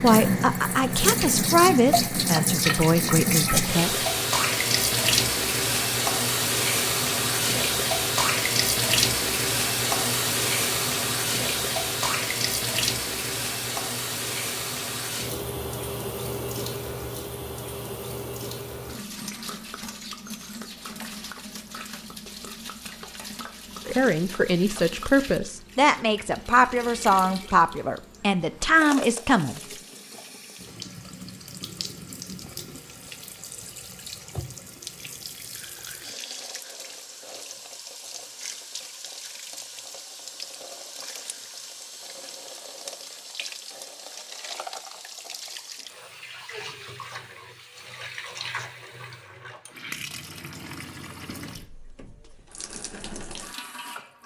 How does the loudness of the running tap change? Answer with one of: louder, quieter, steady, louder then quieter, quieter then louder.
quieter.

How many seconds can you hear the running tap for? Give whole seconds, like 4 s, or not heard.
54 s.